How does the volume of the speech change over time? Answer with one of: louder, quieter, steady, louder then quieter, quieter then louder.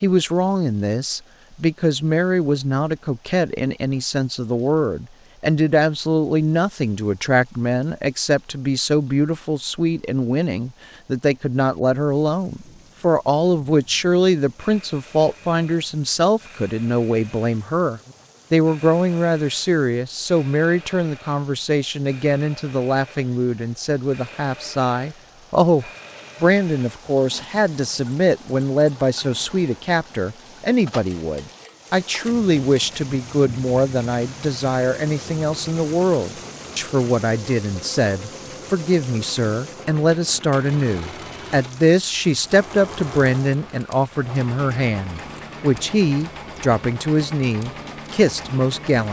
steady.